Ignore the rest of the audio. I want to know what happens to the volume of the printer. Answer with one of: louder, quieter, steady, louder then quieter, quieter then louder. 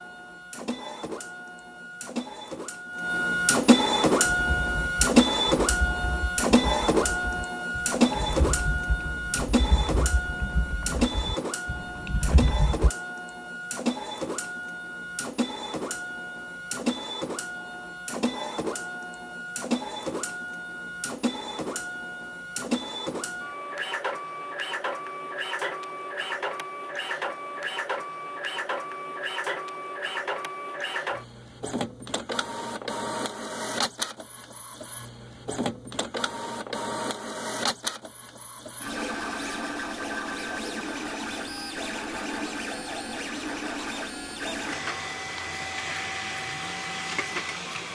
quieter.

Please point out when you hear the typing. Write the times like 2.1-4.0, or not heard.
4.2-12.9.